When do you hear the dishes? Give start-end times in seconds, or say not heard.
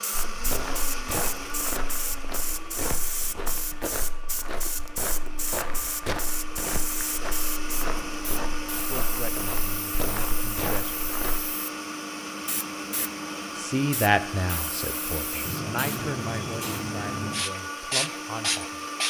not heard.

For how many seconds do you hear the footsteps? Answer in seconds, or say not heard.
11 s.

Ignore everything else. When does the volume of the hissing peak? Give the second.
18 s.